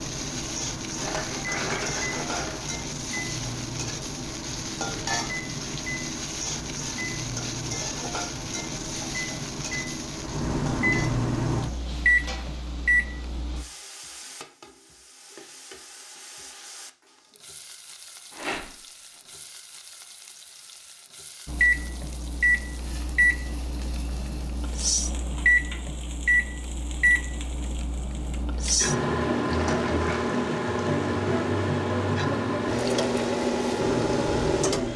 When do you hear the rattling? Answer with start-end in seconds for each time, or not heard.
0.9-2.6, 18.3-18.8, 29.5-30.3.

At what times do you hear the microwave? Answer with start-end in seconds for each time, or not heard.
0.0-13.7, 21.4-34.9.